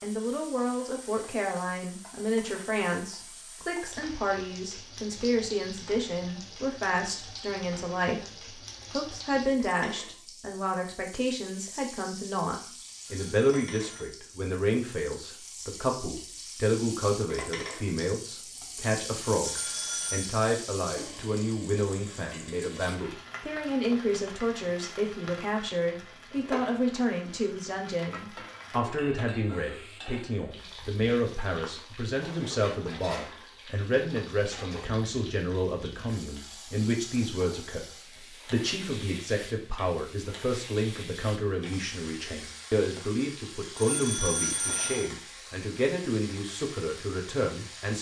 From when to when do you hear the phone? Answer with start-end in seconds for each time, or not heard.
13.1-14.2, 19.4-20.4, 43.8-45.1.